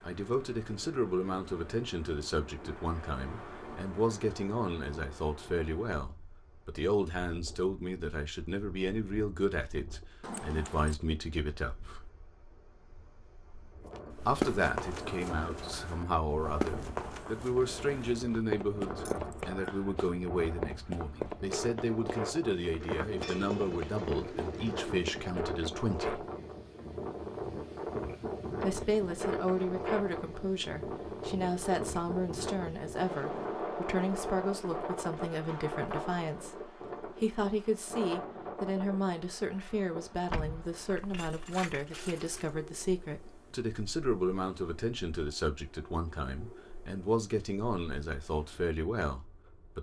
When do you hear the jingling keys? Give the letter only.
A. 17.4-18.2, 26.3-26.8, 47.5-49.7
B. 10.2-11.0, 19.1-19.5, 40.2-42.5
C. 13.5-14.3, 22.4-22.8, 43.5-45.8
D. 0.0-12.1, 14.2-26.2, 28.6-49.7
B.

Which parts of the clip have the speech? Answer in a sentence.
You can hear the speech from 0.0 to 12.1 s, from 14.2 to 26.2 s and from 28.6 to 49.7 s.